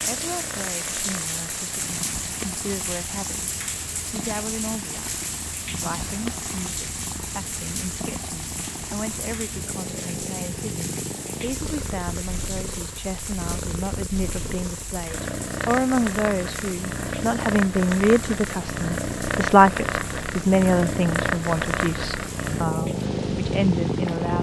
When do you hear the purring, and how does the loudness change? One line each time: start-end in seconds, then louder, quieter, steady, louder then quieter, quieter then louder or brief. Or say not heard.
0.0-24.3 louder.